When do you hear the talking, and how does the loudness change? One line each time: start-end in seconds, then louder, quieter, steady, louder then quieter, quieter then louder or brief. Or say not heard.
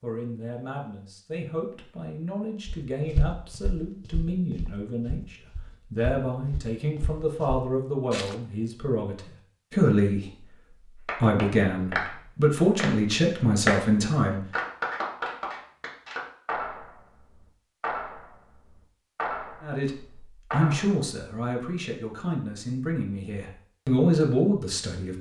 0.0-14.4 louder
19.6-25.1 quieter then louder.